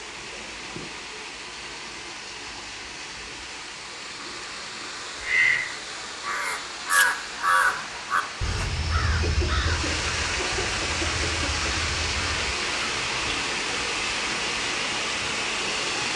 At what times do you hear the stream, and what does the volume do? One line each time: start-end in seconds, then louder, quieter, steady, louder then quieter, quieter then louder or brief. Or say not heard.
0.0-16.1 louder.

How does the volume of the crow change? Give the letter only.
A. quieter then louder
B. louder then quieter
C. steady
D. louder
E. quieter
B.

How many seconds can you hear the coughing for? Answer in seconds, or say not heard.
3 s.